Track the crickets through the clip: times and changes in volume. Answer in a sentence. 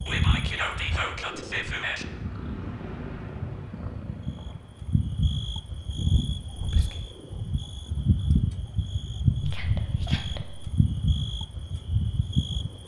The crickets can be heard from 0.0 to 12.8 s, getting louder.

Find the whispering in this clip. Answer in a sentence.
You can hear the whispering from 0.1 to 2.0 s, from 6.5 to 7.0 s and from 9.4 to 10.7 s.